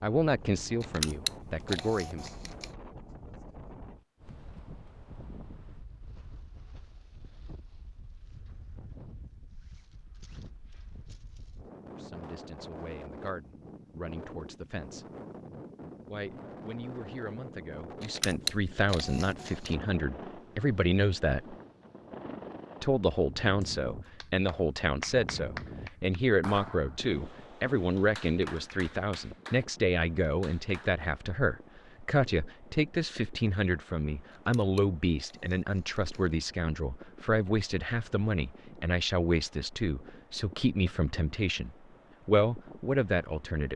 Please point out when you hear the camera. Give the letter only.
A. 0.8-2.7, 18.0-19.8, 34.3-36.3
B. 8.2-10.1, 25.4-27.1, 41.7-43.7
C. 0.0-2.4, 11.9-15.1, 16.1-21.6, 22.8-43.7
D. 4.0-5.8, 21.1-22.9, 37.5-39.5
A.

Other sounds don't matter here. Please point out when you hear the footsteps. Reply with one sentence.
The footsteps can't be heard in this clip.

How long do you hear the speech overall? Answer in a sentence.
You can hear the speech for 32 seconds altogether.